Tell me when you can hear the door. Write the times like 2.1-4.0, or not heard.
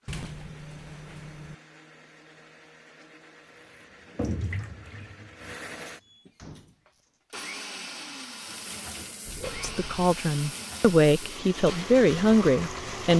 0.1-1.6, 6.0-7.2, 9.2-10.1.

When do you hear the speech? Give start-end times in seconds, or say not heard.
9.6-13.1.